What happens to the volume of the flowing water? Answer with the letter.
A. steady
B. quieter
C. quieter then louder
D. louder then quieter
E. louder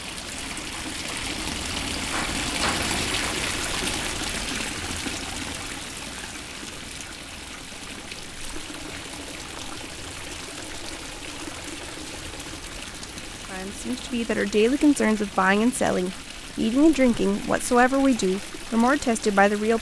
B.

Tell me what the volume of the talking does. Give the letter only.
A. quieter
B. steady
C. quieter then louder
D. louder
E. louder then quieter
B.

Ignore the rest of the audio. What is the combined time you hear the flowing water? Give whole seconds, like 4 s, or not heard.
20 s.